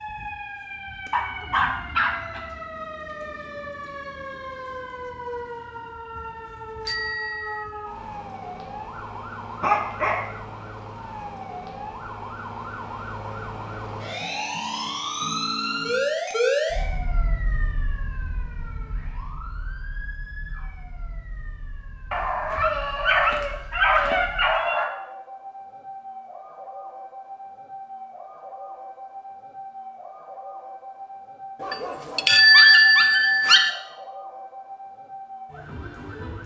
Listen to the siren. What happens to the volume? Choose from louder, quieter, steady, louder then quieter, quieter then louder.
louder then quieter.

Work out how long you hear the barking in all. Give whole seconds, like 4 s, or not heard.
7 s.